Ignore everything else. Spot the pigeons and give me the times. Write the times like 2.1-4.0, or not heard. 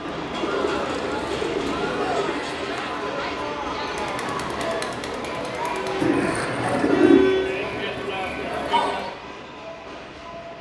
0.3-2.4, 6.0-7.2.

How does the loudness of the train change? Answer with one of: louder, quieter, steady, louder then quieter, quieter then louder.
quieter.